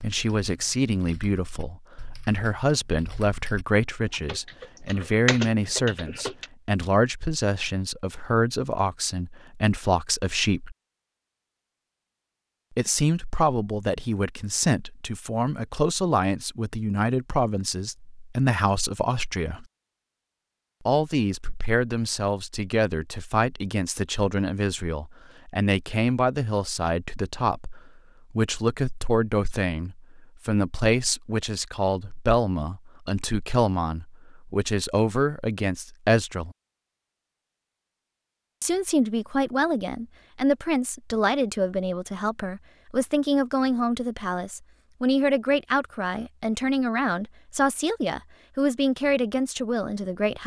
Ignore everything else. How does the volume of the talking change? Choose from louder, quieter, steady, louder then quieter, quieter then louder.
steady.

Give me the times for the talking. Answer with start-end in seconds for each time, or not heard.
0.0-10.8, 12.8-19.6, 20.9-36.5, 38.6-50.4.